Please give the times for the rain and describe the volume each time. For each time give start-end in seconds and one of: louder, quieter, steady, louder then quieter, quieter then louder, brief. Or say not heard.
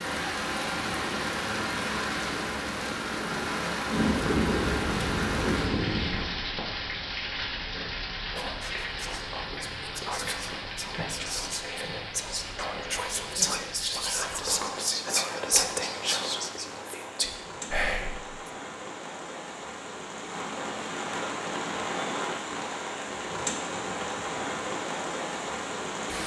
0.0-26.2 quieter then louder.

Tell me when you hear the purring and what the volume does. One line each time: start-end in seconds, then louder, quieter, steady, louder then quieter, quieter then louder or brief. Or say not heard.
0.0-6.4 louder.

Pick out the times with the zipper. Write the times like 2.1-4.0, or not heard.
not heard.